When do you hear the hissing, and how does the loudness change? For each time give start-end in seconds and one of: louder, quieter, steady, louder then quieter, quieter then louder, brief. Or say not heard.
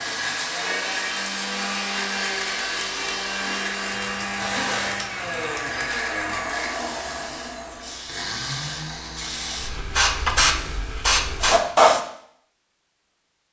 0.0-12.0 quieter then louder.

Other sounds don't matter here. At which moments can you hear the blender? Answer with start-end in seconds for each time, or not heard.
0.0-10.8.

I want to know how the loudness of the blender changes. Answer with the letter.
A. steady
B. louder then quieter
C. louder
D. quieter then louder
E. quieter
E.